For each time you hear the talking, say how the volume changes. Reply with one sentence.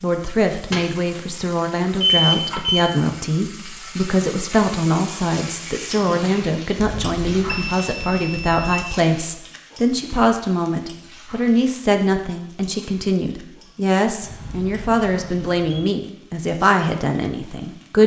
You can hear the talking from 0.0 to 18.0 s, at a steady volume.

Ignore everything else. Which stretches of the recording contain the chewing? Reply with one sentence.
The chewing can't be heard in this clip.